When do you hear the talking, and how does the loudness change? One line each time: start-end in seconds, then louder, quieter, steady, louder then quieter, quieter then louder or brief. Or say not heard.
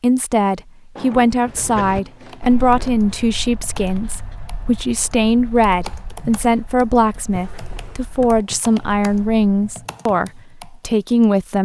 0.0-11.6 steady.